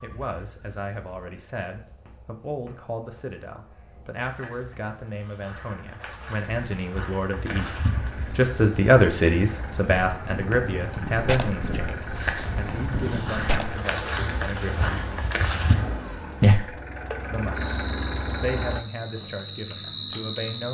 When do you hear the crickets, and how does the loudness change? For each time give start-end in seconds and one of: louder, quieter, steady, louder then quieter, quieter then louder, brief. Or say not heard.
0.0-20.7 louder.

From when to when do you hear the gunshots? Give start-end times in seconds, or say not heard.
10.0-13.8.